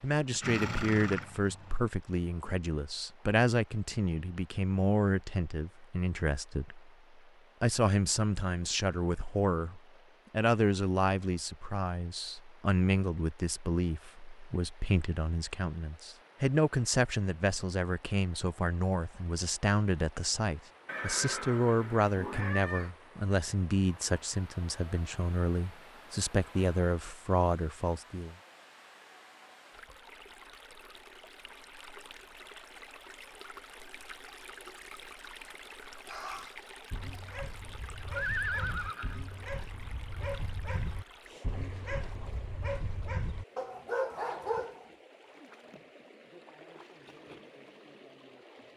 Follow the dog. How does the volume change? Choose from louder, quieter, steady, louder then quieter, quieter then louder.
louder.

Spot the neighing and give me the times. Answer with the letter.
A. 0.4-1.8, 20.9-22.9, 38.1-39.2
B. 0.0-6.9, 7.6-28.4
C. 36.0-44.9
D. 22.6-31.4
A.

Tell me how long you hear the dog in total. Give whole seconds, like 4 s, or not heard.
9 s.